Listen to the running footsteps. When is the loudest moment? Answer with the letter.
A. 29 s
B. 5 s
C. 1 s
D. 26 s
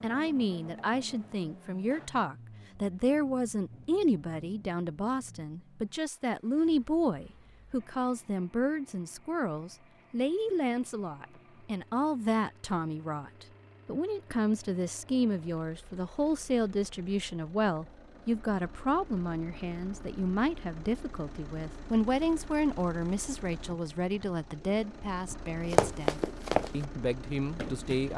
D.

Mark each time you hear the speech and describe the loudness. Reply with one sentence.
You can hear the speech from 0.0 to 28.1 s, at a steady volume.